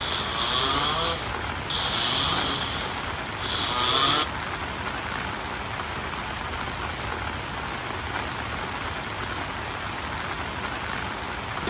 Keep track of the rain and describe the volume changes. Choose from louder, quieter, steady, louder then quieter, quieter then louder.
steady.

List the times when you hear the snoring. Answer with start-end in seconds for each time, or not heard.
0.0-4.2.